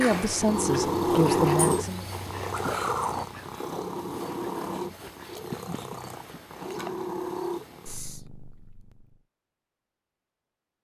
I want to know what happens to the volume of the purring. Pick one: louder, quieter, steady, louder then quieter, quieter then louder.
quieter.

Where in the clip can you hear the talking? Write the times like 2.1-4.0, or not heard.
0.0-2.0.